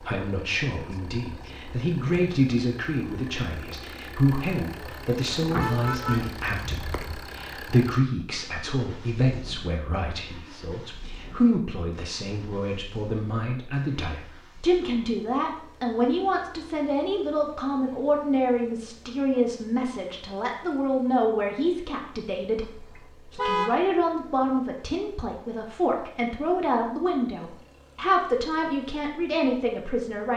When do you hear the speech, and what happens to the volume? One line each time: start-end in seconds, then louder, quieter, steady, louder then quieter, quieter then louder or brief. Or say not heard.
0.0-30.3 steady.